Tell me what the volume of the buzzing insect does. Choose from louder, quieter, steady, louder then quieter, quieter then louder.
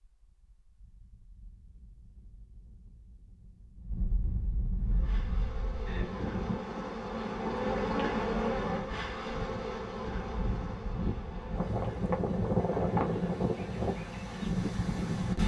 louder then quieter.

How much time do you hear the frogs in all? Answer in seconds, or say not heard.
not heard.